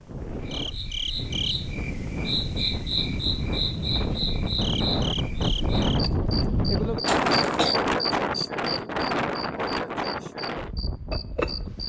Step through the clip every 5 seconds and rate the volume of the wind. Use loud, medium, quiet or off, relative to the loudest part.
medium, loud, medium.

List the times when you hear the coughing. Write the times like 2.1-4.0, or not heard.
7.0-7.8.